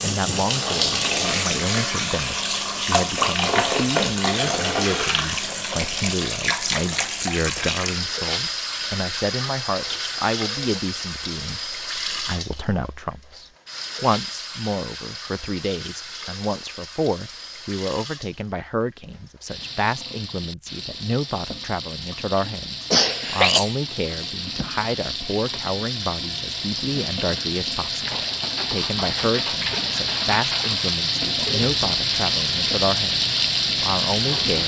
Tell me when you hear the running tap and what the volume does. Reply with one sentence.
The running tap can be heard from 0.0 to 34.6 s, getting quieter then louder.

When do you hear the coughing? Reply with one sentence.
The coughing can be heard from 22.9 to 24.3 s.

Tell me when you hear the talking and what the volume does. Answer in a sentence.
You can hear the talking from 0.0 to 34.6 s, at a steady volume.